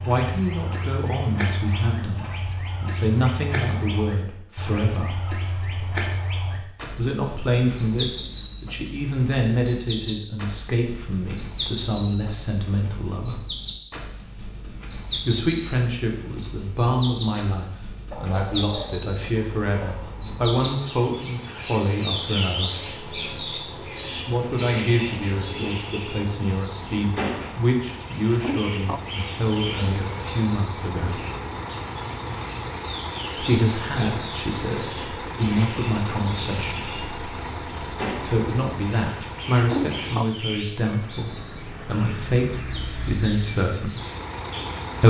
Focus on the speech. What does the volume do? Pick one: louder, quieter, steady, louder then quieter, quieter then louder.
steady.